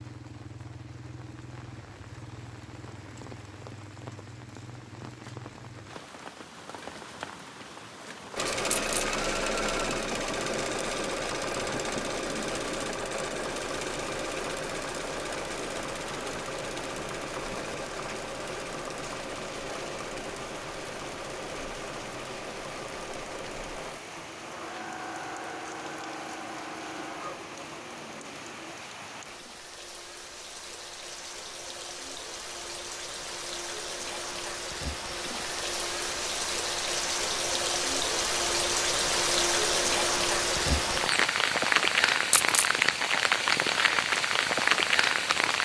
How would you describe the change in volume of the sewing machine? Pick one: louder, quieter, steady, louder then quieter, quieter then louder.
quieter.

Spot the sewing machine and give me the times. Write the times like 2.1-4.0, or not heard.
8.3-28.8.